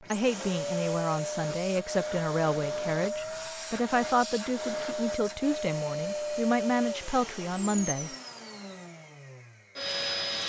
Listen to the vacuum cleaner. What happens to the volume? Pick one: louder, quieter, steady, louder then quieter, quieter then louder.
quieter.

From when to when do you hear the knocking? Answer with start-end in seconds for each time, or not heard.
not heard.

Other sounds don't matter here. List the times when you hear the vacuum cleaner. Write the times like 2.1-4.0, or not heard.
0.0-10.4.